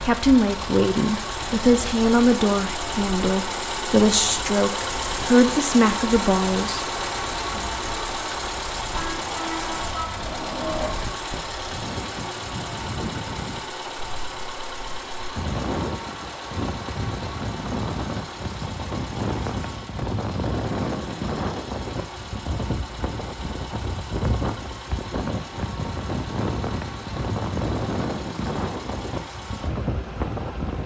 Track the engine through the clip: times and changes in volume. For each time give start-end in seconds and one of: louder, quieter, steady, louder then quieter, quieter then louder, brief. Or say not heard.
0.0-30.8 quieter.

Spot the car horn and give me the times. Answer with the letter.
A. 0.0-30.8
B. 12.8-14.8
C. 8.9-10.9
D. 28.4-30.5
C.